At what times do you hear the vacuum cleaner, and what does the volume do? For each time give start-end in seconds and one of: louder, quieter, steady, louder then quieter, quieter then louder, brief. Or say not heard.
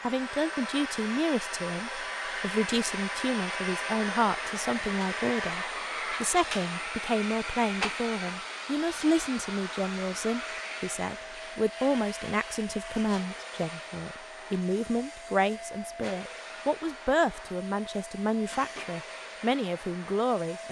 0.0-20.6 quieter.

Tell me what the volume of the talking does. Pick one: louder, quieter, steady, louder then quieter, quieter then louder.
steady.